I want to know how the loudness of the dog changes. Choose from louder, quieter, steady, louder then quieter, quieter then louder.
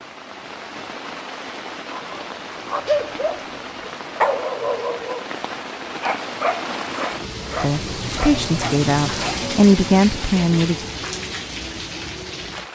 quieter.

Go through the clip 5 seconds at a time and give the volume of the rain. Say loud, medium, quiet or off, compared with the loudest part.
medium, loud, loud.